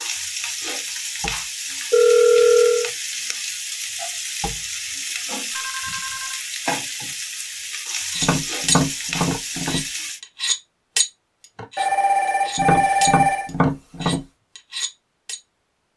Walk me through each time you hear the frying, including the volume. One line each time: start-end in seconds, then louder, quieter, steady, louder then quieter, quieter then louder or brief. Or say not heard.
0.0-10.2 steady.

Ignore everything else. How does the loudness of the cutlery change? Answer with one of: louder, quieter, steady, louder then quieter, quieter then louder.
quieter then louder.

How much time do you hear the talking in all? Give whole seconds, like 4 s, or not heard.
not heard.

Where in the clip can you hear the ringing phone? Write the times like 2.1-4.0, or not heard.
1.9-2.9, 5.5-6.4, 11.8-13.5.